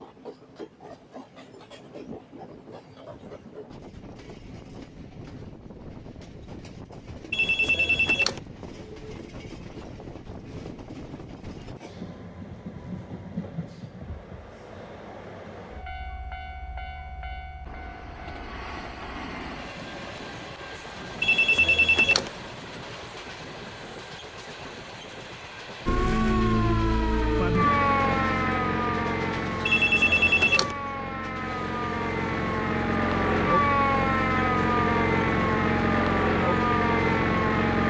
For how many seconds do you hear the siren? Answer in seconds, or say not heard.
12 s.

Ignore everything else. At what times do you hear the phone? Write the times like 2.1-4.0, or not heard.
7.3-8.4, 21.2-22.3, 29.6-30.8.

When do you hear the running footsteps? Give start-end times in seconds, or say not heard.
not heard.